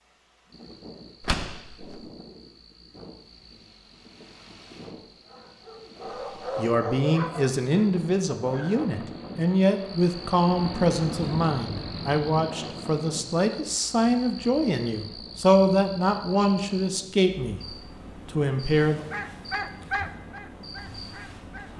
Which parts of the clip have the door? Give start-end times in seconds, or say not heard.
1.2-2.1.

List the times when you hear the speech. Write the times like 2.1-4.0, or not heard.
6.5-19.1.